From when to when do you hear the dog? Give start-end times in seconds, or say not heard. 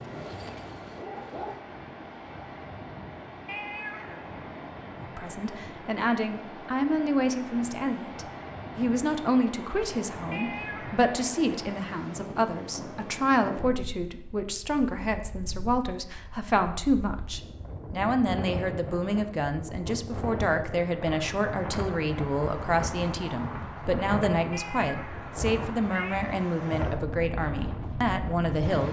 0.0-1.6.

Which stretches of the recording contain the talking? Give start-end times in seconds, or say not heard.
5.0-28.8.